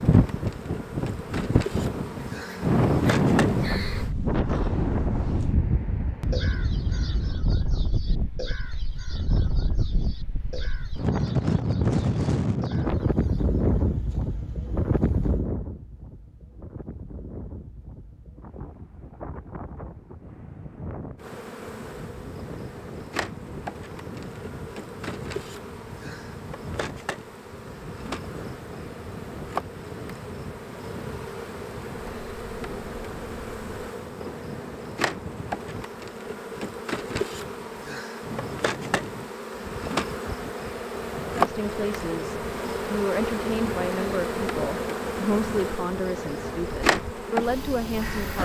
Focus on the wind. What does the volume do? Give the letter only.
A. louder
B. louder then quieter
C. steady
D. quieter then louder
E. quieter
E.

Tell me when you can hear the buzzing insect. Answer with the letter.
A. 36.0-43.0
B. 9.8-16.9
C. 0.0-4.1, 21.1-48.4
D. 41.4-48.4
C.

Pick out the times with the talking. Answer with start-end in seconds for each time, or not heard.
41.4-48.4.